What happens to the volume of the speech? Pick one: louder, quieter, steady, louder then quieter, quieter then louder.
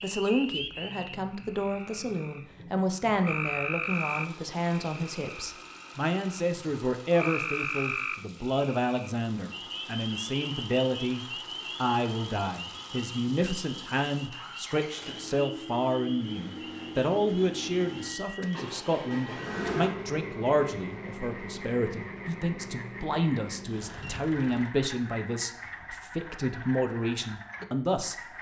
steady.